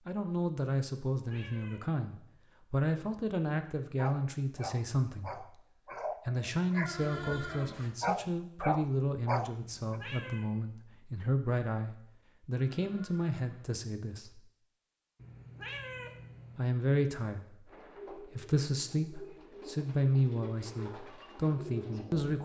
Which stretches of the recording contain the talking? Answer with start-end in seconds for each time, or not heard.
0.1-5.6, 6.2-14.4, 16.6-22.3.